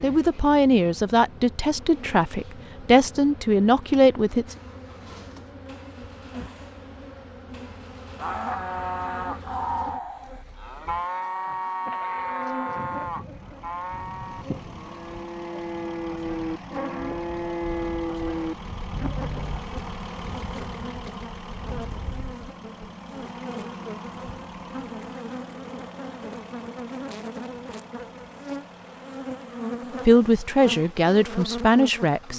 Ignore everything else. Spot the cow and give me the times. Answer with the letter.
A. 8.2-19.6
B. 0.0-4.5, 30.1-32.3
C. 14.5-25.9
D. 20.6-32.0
A.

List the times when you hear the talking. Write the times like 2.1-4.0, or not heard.
0.0-4.5, 30.1-32.3.